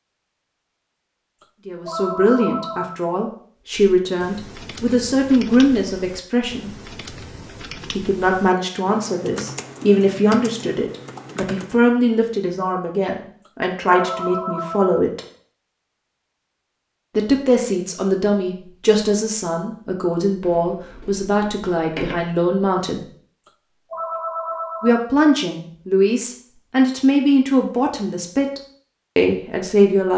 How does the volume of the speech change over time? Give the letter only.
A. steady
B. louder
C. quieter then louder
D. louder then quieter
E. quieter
A.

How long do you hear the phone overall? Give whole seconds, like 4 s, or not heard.
5 s.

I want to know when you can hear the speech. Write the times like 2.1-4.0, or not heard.
1.6-6.7, 8.0-15.2, 17.1-23.0, 24.8-30.1.